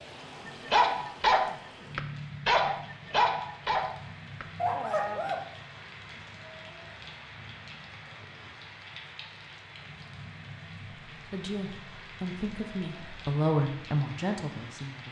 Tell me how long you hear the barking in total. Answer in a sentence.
You can hear the barking for 5 seconds altogether.